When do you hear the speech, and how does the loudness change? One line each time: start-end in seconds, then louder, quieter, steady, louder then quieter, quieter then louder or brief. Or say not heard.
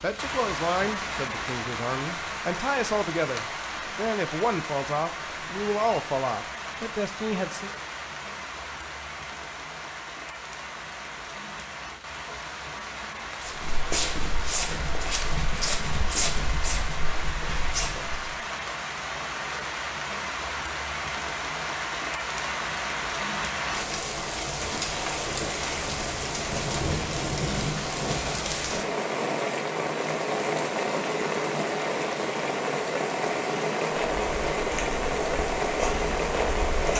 0.0-7.7 steady.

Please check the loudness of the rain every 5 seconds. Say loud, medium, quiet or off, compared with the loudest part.
medium, medium, medium, medium, loud, loud, loud, loud.